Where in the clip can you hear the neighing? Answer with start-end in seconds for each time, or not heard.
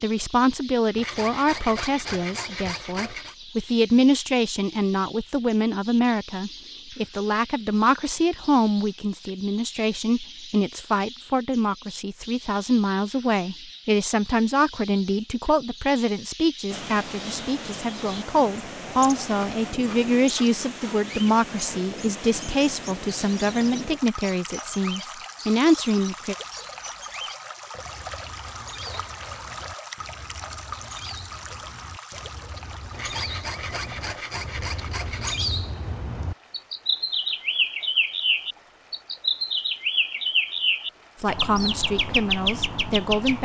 not heard.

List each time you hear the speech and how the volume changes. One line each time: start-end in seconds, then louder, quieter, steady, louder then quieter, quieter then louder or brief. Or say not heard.
0.0-26.4 steady
41.2-43.3 brief.